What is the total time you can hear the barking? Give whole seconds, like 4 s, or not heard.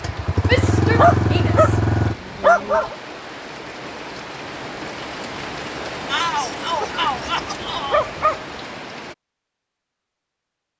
3 s.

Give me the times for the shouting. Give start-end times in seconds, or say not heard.
0.5-2.9, 6.0-8.1.